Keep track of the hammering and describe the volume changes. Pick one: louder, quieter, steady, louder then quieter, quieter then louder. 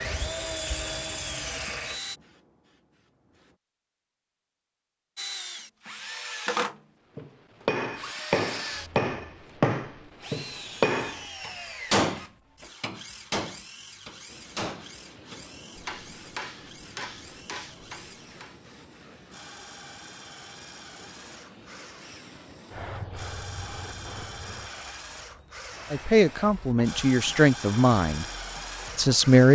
quieter.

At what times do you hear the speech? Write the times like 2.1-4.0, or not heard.
25.9-28.2, 28.9-29.5.